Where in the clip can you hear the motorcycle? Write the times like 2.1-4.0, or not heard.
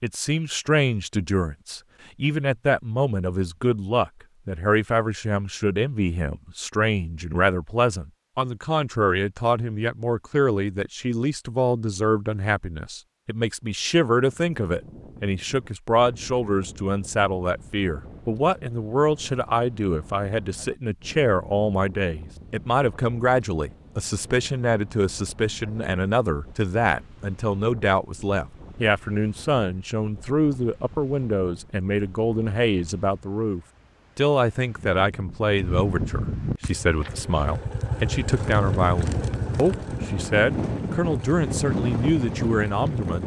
36.6-43.2.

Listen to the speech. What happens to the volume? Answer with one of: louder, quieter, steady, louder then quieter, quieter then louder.
steady.